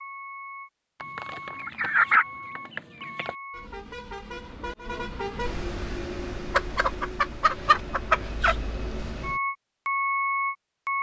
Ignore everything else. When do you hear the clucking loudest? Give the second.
2 s.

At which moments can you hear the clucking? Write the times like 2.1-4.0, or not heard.
1.0-3.4, 6.5-8.6.